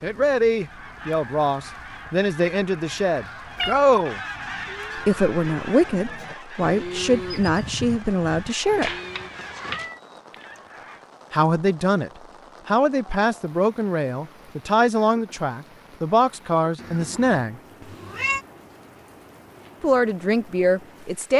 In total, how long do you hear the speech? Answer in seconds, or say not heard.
16 s.